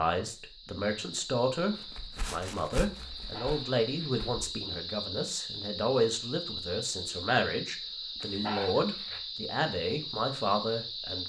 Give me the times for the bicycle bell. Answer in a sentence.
The bicycle bell can't be heard in this clip.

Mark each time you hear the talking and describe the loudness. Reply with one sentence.
You can hear the talking from 0.0 to 11.2 s, at a steady volume.